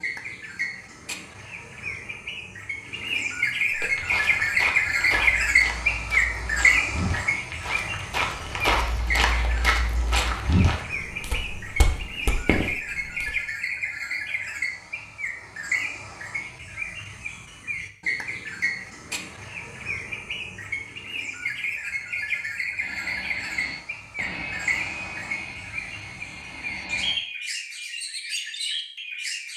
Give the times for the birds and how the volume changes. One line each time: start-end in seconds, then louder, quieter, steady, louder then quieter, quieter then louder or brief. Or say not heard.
0.0-29.5 quieter.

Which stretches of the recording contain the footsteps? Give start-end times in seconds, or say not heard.
3.7-13.3.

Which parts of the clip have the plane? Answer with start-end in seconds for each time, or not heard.
22.8-27.2.